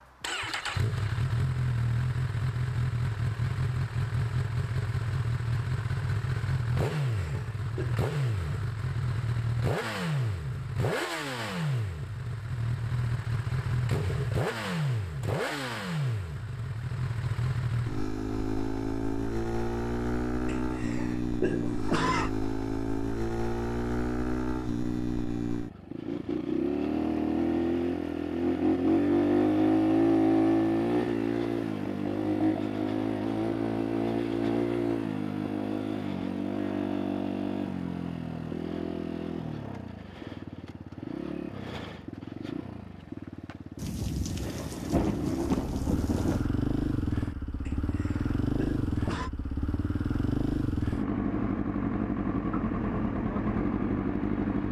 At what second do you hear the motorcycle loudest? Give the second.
30 s.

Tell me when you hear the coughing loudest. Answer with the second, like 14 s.
22 s.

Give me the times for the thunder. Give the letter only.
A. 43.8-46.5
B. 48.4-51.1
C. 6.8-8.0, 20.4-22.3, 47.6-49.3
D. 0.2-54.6
A.